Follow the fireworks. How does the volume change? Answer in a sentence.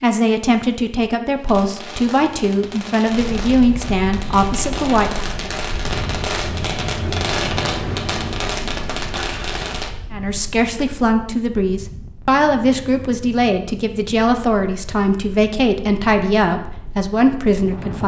The volume of the fireworks goes up.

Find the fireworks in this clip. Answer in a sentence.
The fireworks can be heard from 1.4 to 9.9 s.